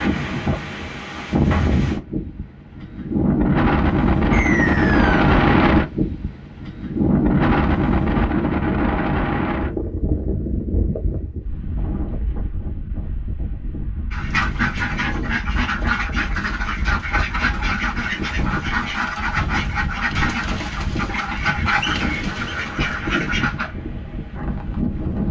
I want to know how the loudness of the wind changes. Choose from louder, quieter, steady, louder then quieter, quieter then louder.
quieter.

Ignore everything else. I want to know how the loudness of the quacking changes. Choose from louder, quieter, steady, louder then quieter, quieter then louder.
steady.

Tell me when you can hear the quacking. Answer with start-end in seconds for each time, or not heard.
14.1-23.8.